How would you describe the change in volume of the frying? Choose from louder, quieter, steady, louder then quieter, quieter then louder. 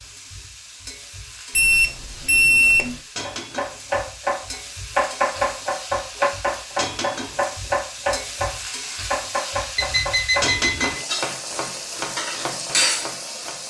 louder.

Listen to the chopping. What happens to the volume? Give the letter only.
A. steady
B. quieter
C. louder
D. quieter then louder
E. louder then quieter
B.